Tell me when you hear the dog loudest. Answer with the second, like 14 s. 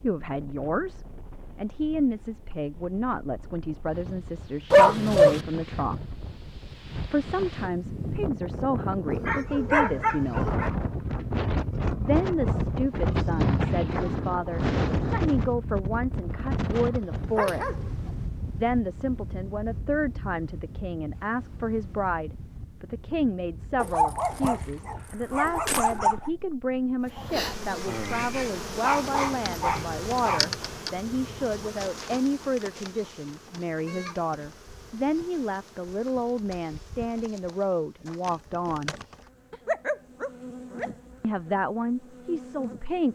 5 s.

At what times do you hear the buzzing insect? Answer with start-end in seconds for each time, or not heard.
27.1-43.1.